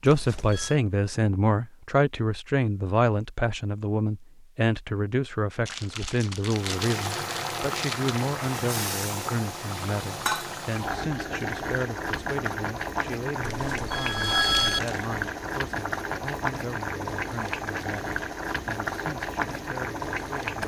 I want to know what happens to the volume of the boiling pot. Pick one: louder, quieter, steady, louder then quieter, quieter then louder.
steady.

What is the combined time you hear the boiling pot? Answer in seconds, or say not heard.
14 s.